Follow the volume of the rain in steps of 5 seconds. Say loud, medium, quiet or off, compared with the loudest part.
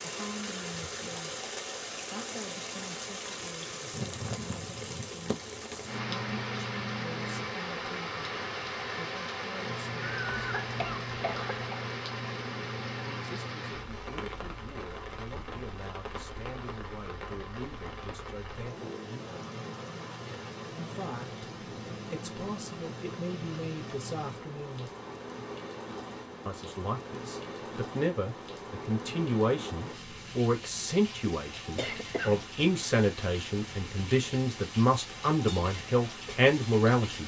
loud, loud, loud, medium, medium, medium, medium, medium.